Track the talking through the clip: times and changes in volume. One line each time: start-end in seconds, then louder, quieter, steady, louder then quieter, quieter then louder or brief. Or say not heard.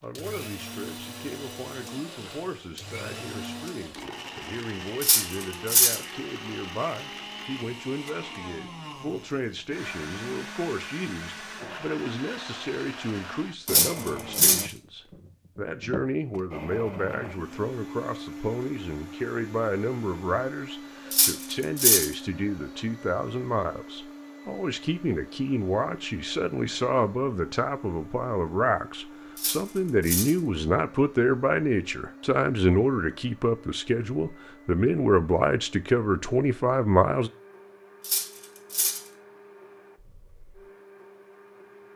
0.0-37.3 louder.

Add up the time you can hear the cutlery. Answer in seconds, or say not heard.
5 s.